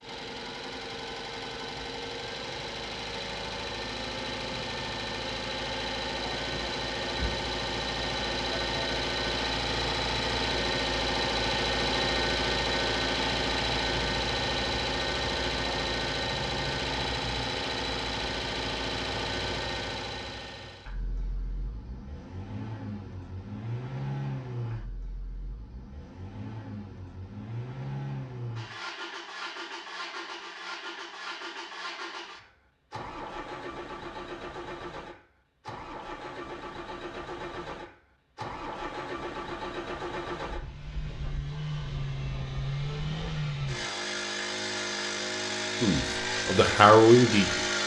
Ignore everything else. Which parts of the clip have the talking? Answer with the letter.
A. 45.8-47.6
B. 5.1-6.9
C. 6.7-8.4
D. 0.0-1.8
A.